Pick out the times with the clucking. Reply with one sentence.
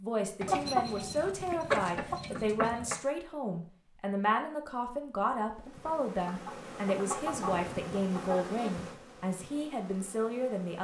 The clucking can be heard from 0.4 to 3.0 s and from 5.8 to 8.4 s.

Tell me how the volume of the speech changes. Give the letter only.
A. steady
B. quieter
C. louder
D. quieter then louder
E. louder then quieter
A.